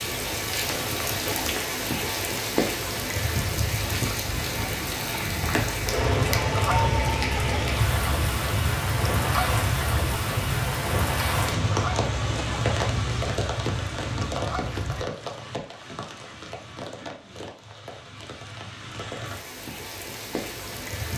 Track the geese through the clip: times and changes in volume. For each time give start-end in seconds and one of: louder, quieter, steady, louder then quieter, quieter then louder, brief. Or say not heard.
6.0-15.1 quieter.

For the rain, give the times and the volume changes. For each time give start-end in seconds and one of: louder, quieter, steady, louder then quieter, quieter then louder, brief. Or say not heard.
0.0-21.1 quieter.